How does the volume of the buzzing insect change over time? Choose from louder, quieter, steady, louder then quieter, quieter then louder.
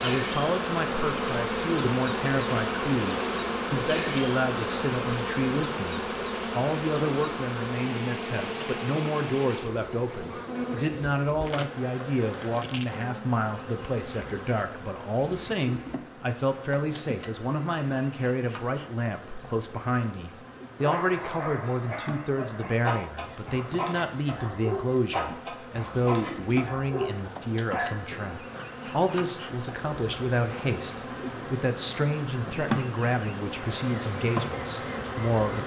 quieter then louder.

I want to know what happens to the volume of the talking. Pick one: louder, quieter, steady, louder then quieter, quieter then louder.
steady.